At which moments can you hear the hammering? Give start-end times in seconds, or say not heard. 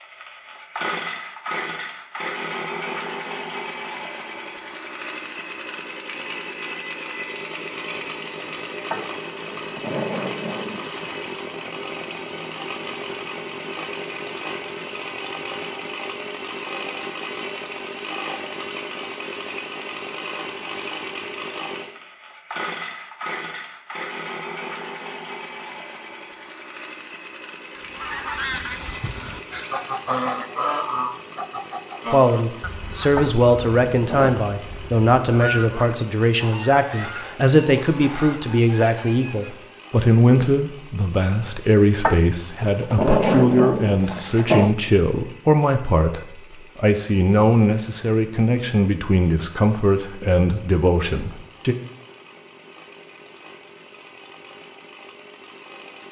not heard.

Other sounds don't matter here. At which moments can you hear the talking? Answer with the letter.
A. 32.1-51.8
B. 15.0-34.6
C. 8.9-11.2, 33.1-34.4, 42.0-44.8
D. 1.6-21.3
A.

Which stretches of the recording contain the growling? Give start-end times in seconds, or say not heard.
8.9-11.2, 33.1-34.4, 42.0-44.8.